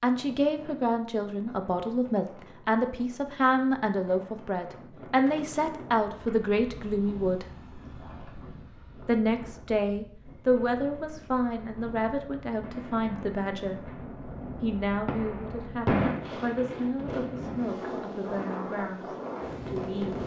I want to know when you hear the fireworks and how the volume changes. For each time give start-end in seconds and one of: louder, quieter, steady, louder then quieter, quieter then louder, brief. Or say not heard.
10.2-16.2 louder.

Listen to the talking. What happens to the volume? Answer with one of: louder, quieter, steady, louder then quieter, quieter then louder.
quieter.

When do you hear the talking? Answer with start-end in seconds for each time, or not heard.
0.0-7.5, 9.1-13.8, 14.6-20.2.